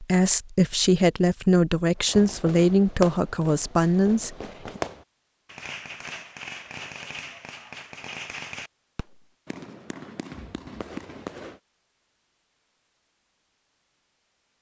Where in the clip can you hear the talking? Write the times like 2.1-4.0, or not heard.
0.0-4.8.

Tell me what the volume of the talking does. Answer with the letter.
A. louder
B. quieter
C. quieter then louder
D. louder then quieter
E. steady
E.